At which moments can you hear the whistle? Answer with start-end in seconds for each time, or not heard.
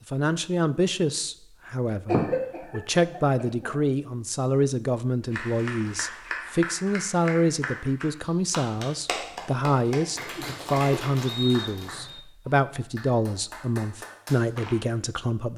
11.2-12.2.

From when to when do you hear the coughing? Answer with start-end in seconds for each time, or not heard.
2.0-3.8, 10.3-11.1.